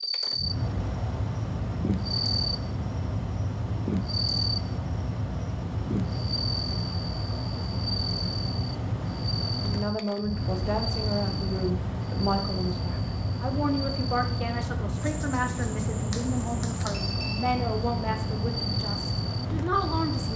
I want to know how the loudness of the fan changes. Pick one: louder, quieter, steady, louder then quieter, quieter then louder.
steady.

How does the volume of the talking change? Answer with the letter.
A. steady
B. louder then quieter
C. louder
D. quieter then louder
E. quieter
A.